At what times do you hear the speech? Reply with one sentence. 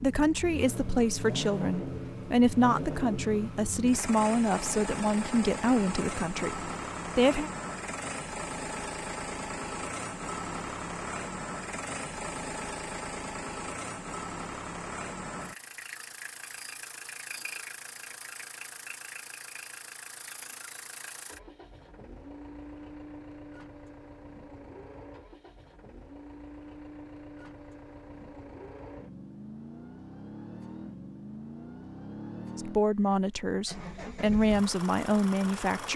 You can hear the speech from 0.0 to 7.5 s and from 32.5 to 35.9 s.